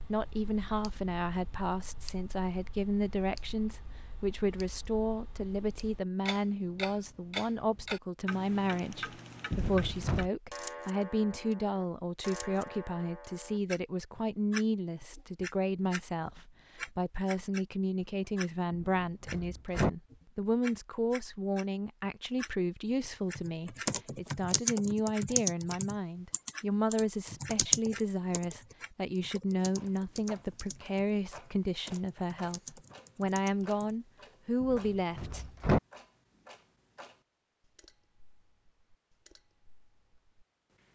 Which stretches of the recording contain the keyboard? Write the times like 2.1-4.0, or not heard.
23.3-34.0.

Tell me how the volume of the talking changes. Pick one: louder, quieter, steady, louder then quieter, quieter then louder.
steady.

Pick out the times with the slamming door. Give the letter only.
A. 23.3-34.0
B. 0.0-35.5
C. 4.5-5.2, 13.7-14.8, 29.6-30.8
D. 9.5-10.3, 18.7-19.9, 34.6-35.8
D.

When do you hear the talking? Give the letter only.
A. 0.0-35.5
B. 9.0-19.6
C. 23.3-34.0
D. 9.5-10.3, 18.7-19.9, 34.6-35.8
A.